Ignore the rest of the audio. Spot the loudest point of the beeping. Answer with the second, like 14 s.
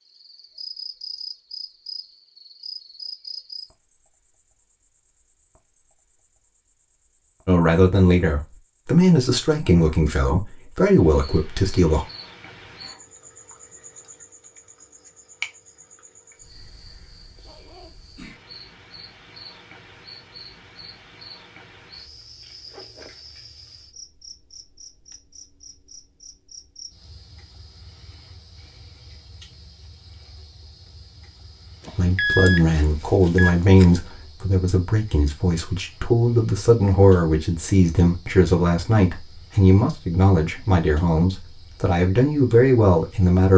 32 s.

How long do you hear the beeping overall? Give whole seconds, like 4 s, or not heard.
2 s.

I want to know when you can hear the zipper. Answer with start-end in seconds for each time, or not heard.
17.4-18.0, 22.6-23.1.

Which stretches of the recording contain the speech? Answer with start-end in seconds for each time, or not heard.
7.5-12.1, 31.9-43.5.